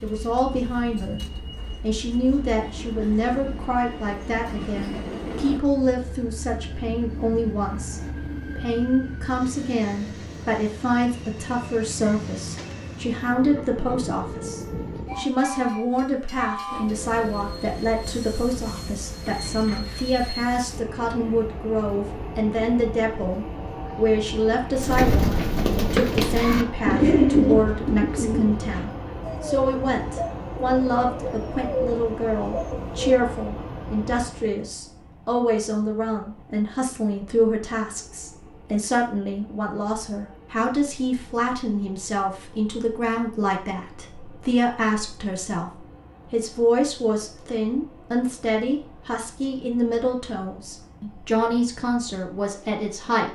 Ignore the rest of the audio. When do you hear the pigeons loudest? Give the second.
27 s.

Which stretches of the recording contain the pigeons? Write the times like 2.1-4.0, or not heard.
24.8-33.2.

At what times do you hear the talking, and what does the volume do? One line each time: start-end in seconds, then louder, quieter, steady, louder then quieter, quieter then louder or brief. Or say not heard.
0.0-1.2 brief
1.8-53.3 steady.